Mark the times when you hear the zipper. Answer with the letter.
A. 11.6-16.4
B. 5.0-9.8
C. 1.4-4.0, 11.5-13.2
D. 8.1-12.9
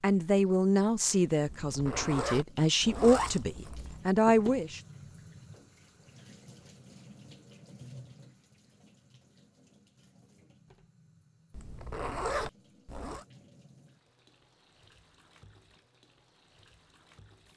C.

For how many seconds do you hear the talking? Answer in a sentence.
You can hear the talking for 5 seconds altogether.